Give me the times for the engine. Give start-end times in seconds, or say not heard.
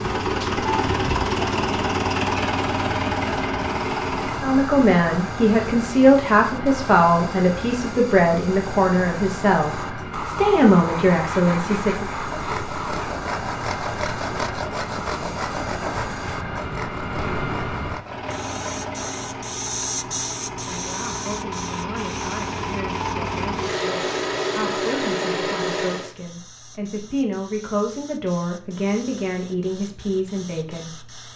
0.0-4.5, 18.0-26.1.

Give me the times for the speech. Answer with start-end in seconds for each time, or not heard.
4.4-12.1, 20.6-31.1.